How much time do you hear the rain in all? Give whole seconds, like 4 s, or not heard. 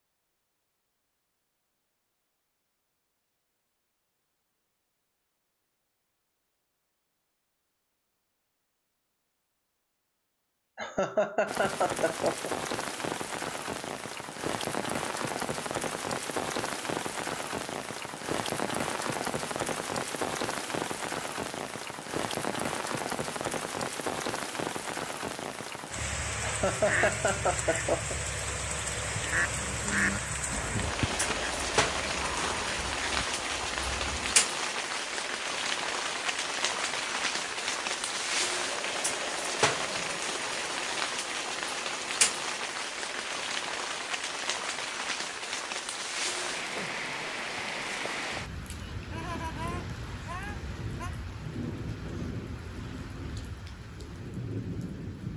44 s.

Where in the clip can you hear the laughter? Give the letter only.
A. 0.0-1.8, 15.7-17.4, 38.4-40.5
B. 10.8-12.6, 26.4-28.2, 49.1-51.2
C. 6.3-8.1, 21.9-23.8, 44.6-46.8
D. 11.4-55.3
B.